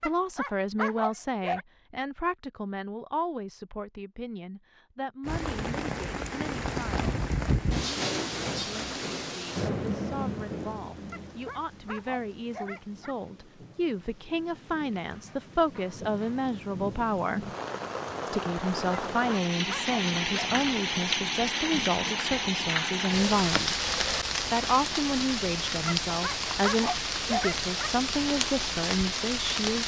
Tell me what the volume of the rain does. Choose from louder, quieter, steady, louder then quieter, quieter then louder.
quieter then louder.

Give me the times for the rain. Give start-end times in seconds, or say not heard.
5.2-29.8.